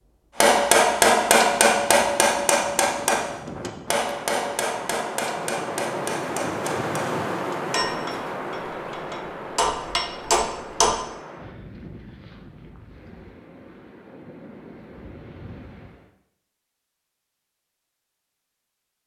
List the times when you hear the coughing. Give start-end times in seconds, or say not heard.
not heard.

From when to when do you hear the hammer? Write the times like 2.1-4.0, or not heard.
0.4-11.0.